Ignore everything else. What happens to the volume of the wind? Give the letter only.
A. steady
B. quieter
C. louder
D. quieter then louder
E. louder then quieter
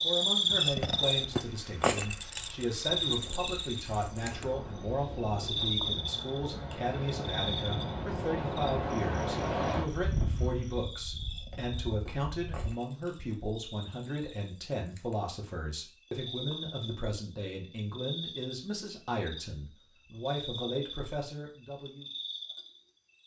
C.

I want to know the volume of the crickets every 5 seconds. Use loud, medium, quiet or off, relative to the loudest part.
loud, medium, quiet, quiet, quiet.